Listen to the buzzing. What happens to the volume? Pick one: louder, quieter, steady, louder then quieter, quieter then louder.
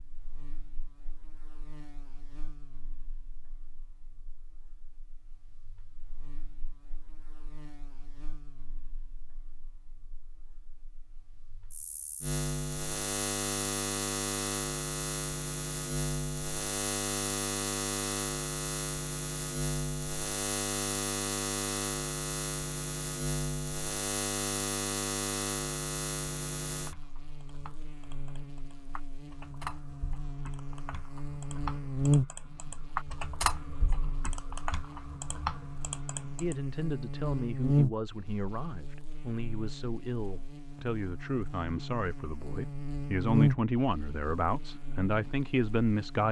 louder.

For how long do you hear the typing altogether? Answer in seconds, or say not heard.
10 s.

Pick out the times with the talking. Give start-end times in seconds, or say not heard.
36.4-46.2.